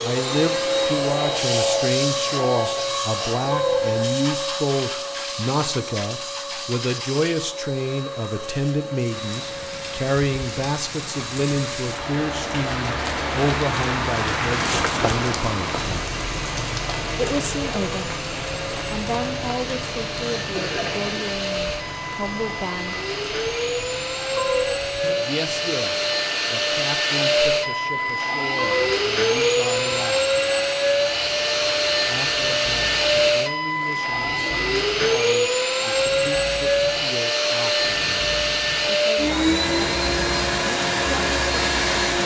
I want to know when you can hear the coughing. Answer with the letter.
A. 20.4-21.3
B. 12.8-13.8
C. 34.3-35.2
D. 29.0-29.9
A.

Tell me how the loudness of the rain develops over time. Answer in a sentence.
The volume of the rain goes down.